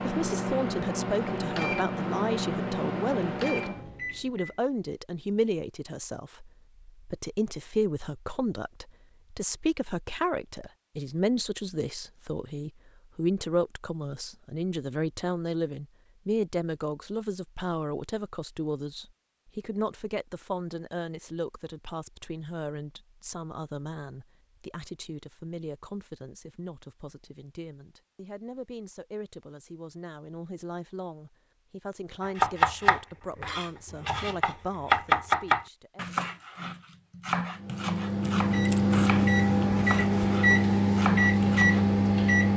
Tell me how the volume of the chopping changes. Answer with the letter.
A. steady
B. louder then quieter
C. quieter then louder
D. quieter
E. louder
B.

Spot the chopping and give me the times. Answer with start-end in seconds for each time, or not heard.
32.2-41.9.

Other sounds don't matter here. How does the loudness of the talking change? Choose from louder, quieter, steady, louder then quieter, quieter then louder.
quieter.